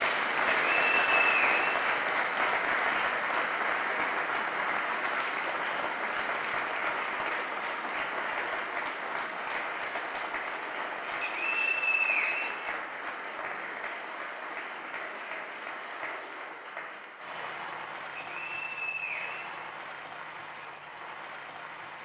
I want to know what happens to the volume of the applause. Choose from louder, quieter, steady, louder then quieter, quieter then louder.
quieter.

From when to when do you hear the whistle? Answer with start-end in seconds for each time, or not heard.
0.6-1.8, 11.2-12.8, 18.1-19.6.